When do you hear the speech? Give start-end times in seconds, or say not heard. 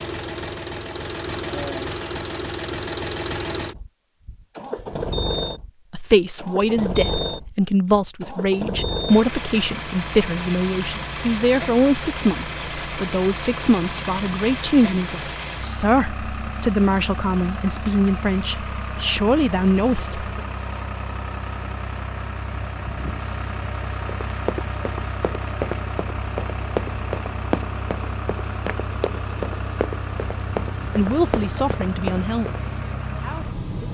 5.9-20.2, 30.9-32.5, 33.1-33.8.